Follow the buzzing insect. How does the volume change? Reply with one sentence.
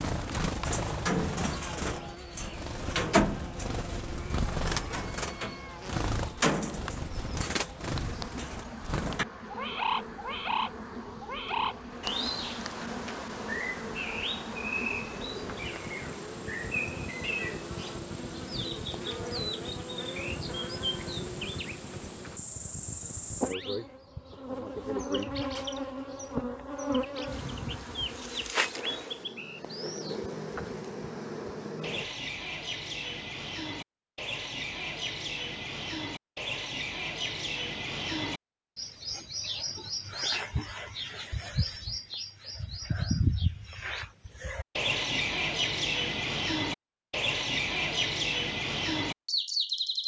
The loudness of the buzzing insect goes up.